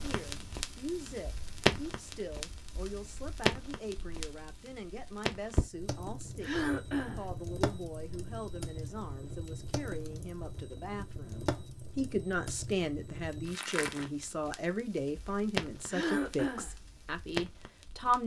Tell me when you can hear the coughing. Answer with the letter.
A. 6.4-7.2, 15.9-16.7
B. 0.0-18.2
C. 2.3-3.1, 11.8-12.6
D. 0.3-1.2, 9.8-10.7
A.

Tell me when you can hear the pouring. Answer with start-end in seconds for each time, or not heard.
not heard.